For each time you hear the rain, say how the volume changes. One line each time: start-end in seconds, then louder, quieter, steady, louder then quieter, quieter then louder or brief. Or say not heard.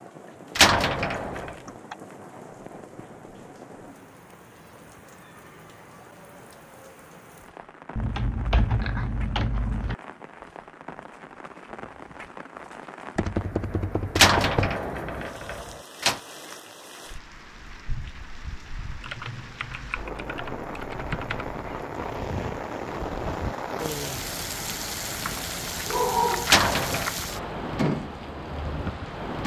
0.0-29.4 louder.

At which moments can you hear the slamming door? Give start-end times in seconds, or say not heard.
0.6-1.6, 14.2-16.2, 26.4-27.1.